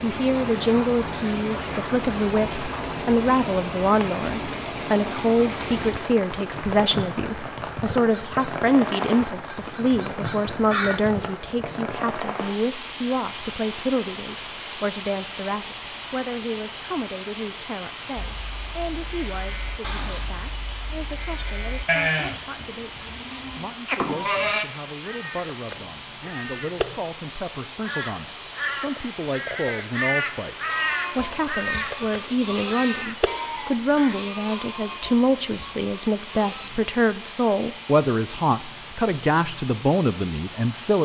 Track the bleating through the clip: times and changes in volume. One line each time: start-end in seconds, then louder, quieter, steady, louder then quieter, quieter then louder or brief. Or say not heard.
18.1-24.6 louder
30.6-36.7 quieter.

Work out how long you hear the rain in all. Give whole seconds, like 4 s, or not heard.
41 s.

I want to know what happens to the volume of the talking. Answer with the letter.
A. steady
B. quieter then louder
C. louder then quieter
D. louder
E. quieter
B.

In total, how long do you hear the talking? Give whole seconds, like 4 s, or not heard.
41 s.